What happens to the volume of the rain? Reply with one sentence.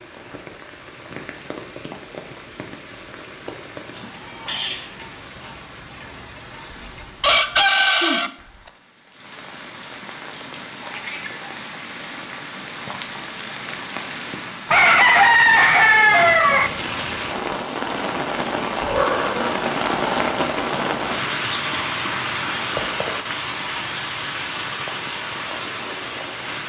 The volume of the rain goes up.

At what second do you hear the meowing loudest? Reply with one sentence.
The loudest moment of the meowing is at 19 seconds.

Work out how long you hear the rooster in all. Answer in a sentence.
You can hear the rooster for 3 seconds altogether.